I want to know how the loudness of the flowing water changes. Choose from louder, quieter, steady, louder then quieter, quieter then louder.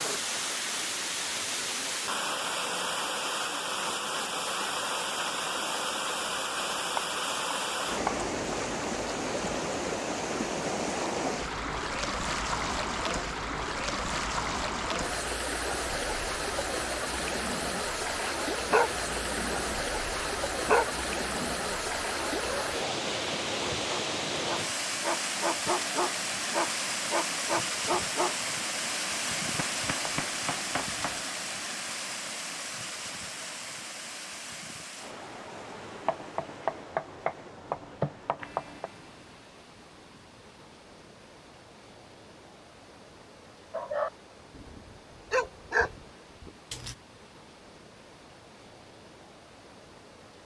quieter.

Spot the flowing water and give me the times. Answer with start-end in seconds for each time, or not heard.
0.0-50.4.